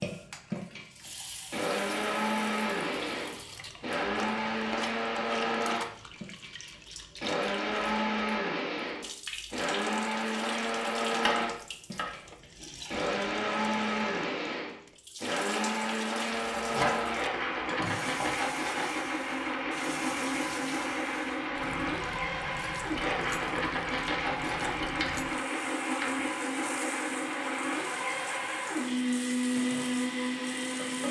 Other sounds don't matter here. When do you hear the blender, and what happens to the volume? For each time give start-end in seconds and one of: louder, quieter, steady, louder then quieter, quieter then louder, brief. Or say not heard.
0.0-31.0 steady.